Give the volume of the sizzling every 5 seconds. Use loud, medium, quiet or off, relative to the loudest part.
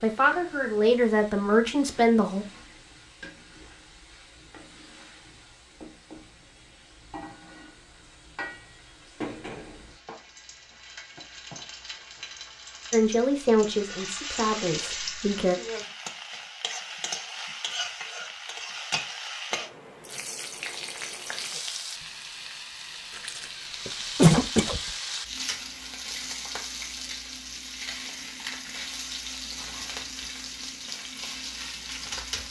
quiet, medium, loud, loud, loud, loud, loud.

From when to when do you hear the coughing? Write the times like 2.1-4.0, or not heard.
23.1-24.8.